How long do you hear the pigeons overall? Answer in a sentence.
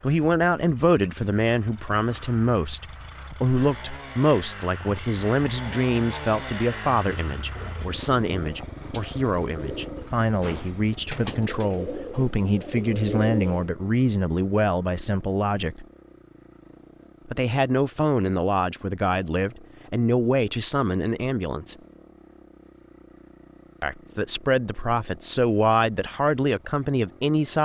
You can hear the pigeons for 7 seconds altogether.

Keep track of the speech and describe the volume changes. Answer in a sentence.
The volume of the speech stays about the same.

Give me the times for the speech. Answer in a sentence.
You can hear the speech from 0.0 to 15.8 s, from 17.2 to 21.8 s and from 23.8 to 27.5 s.